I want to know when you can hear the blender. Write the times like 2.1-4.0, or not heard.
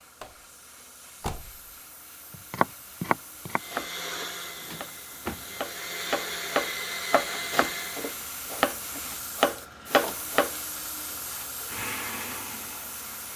3.5-8.3, 11.2-13.1.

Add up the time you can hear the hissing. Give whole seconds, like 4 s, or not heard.
13 s.